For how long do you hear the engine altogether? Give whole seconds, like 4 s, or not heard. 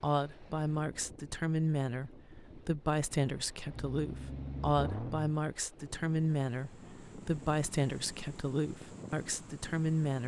2 s.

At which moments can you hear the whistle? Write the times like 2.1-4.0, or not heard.
not heard.